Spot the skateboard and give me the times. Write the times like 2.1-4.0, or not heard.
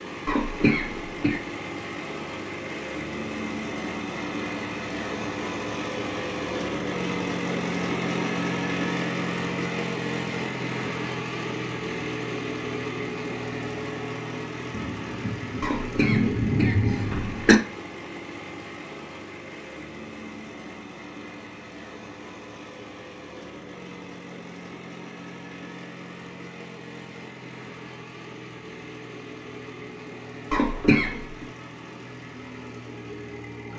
not heard.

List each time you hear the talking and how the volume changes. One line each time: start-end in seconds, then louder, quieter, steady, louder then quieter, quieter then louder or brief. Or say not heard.
not heard.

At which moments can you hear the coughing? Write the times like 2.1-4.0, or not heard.
0.2-1.4, 15.6-17.6, 30.5-31.4.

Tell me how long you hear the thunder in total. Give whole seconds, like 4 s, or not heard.
3 s.